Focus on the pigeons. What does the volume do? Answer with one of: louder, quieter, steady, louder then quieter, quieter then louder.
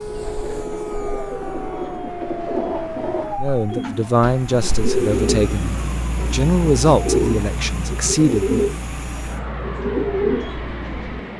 louder.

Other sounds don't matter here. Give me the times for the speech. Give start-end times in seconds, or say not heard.
3.4-8.7.